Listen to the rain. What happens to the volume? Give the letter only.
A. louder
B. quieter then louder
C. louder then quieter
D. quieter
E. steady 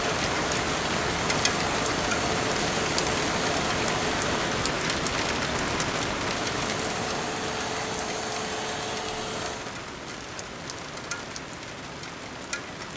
D.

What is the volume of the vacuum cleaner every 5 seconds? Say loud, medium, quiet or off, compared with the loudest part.
loud, loud, off.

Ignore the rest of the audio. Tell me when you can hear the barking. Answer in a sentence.
The barking can't be heard in this clip.